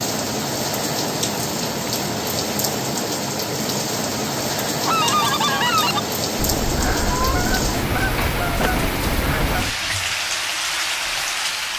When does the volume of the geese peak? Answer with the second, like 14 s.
5 s.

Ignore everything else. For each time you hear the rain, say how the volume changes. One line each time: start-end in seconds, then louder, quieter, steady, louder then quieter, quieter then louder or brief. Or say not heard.
0.0-11.7 steady.